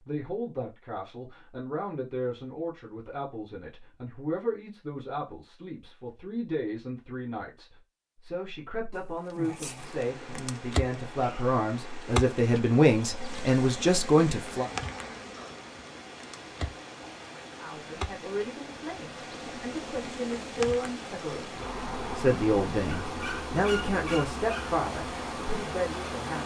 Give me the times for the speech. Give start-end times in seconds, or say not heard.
0.1-14.7, 17.6-26.4.